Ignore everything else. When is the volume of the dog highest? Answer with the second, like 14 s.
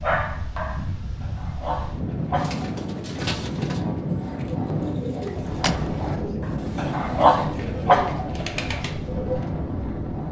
7 s.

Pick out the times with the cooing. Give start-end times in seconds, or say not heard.
2.4-9.5.